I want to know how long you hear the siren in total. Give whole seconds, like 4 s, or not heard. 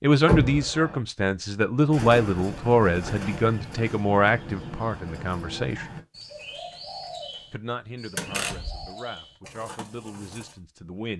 not heard.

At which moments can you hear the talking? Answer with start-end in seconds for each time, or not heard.
0.0-6.0, 7.5-11.1.